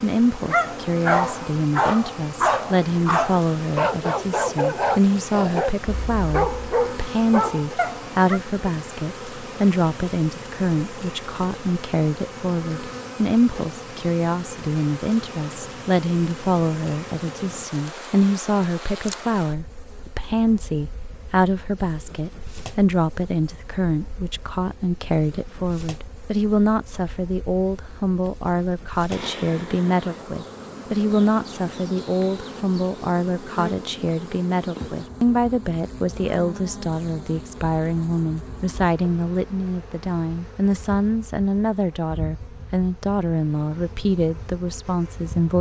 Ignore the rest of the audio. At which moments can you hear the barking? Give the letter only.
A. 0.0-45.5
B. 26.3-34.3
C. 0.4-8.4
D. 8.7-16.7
C.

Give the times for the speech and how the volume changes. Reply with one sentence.
You can hear the speech from 0.0 to 45.5 s, at a steady volume.